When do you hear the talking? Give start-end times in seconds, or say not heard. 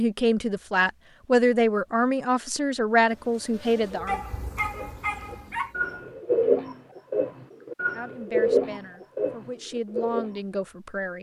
0.0-4.2, 7.8-11.1.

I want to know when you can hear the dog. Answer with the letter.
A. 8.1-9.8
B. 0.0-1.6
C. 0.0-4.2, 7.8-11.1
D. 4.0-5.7
D.